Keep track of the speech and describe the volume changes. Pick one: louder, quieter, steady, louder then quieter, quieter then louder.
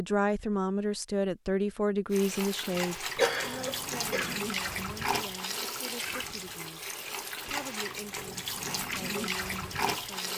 quieter.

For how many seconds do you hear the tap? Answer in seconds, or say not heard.
8 s.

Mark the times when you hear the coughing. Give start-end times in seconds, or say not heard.
3.1-4.4.